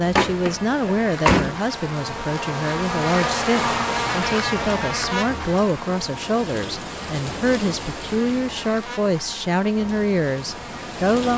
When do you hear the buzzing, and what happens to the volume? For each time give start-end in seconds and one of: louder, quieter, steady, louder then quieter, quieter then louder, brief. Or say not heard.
0.1-11.1 louder then quieter.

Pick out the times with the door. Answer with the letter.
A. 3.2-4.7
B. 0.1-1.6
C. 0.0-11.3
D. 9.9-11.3
B.